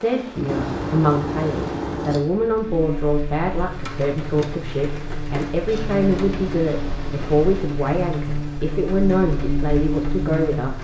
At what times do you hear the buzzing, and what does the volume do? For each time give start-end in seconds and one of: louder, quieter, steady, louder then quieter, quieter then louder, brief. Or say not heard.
2.6-10.7 louder.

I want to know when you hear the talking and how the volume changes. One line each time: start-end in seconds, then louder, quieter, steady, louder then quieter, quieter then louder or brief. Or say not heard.
0.0-10.7 steady.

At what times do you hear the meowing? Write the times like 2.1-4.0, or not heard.
0.5-2.2, 5.7-7.8.